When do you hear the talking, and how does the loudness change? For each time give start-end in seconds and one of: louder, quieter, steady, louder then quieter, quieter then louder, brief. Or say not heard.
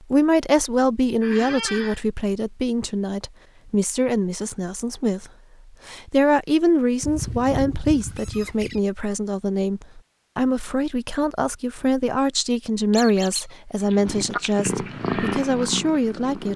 0.1-16.5 steady.